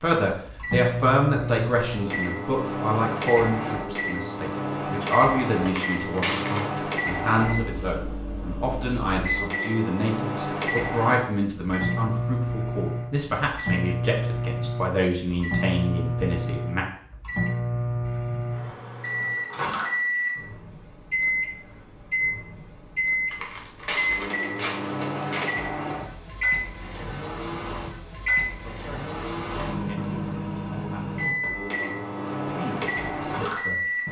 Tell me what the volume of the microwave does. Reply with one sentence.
The volume of the microwave stays about the same.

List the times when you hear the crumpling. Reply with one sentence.
The crumpling can be heard from 5.7 to 6.8 s and from 23.3 to 25.6 s.